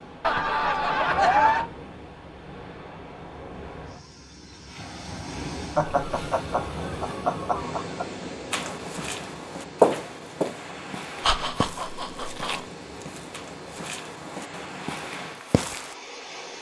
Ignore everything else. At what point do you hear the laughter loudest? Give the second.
1 s.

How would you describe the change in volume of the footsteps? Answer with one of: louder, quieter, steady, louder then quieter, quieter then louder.
quieter.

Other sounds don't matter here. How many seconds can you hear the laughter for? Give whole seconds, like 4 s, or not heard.
5 s.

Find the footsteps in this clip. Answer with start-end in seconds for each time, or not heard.
8.5-15.9.